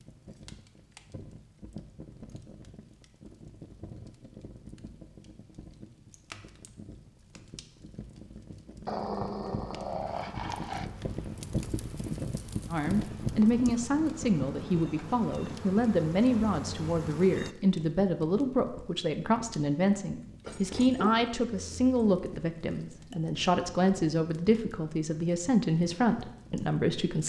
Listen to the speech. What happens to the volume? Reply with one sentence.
The loudness of the speech stays about the same.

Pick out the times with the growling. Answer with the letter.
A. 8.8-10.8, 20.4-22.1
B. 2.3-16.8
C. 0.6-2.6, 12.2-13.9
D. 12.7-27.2
A.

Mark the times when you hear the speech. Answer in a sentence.
You can hear the speech from 12.7 to 27.2 s.